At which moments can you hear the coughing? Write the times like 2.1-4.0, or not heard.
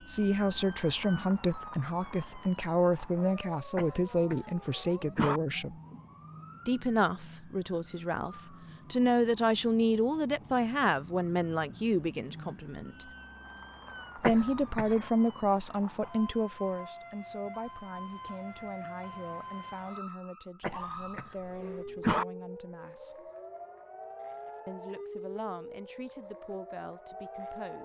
3.8-5.4, 14.2-15.1, 20.6-22.2.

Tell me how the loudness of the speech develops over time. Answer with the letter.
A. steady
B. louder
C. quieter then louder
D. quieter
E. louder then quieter
D.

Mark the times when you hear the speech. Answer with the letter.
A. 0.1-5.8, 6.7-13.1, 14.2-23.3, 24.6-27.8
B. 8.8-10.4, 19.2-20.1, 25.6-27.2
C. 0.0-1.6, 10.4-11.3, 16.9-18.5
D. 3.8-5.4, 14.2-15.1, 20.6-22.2
A.